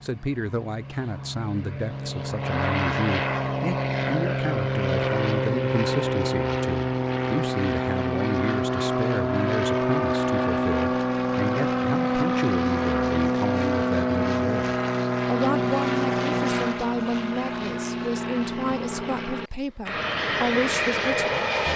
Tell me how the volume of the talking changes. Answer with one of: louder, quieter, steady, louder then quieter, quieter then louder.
steady.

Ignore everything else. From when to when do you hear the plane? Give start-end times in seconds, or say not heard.
0.0-21.7.